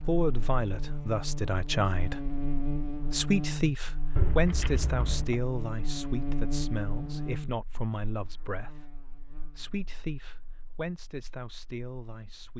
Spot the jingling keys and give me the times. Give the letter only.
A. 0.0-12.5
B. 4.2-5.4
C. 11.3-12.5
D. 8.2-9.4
B.